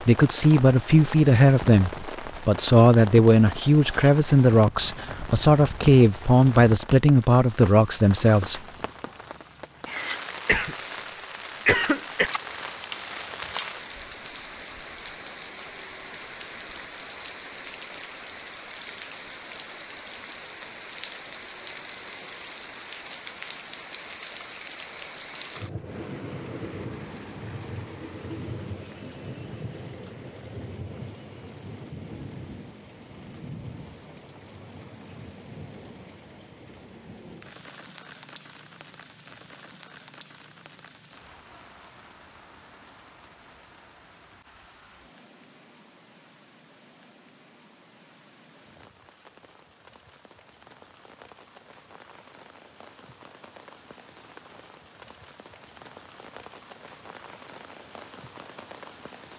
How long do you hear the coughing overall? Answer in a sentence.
You can hear the coughing for 2 seconds altogether.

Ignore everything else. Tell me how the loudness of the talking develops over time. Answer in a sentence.
The loudness of the talking stays about the same.